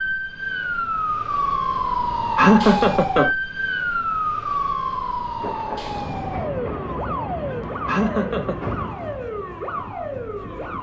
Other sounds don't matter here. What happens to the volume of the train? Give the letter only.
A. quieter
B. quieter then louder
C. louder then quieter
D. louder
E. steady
A.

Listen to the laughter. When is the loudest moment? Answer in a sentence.
The volume of the laughter peaks at 3 seconds.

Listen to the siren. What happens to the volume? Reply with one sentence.
The volume of the siren goes down.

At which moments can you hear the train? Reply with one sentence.
The train can be heard from 5.3 to 10.7 s.